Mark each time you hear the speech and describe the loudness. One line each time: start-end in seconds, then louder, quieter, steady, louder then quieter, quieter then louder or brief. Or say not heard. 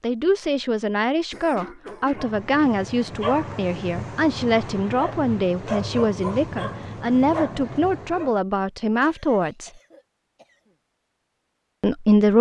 0.0-9.7 steady
11.8-12.3 brief.